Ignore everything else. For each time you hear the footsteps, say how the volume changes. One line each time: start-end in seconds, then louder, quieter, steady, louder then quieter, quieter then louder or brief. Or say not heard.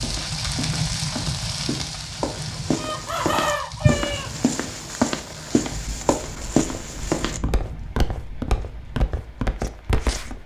0.0-10.4 louder.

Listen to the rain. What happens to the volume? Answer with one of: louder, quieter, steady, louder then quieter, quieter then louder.
quieter.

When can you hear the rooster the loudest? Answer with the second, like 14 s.
4 s.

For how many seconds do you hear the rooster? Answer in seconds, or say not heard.
2 s.